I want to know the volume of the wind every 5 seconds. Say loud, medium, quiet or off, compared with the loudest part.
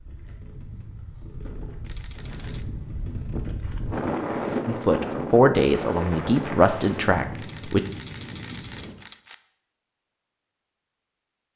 loud, loud, off.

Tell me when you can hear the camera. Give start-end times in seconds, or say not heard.
1.8-2.6, 7.3-9.3.